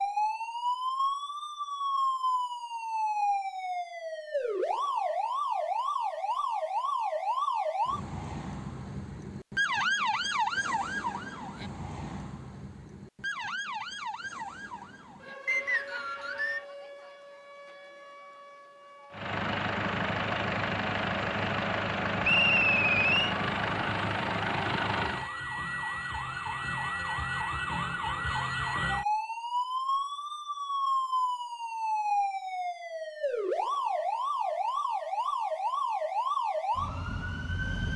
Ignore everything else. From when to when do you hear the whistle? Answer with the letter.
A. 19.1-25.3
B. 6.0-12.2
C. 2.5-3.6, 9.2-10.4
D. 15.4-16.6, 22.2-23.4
D.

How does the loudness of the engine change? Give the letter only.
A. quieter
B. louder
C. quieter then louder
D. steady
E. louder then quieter
D.